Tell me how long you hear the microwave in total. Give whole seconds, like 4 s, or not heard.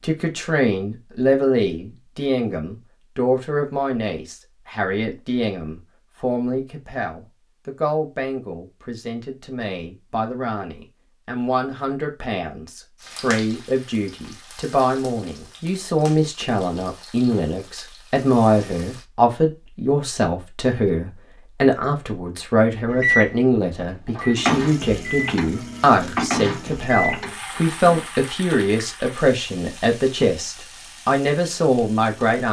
4 s.